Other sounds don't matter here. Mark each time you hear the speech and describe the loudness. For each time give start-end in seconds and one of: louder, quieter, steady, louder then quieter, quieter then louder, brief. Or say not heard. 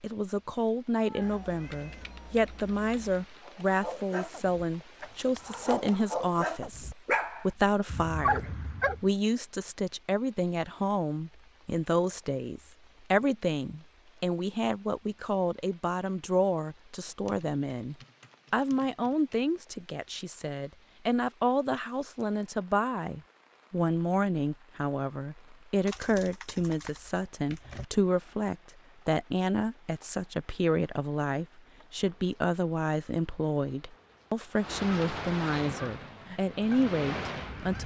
0.0-37.8 steady.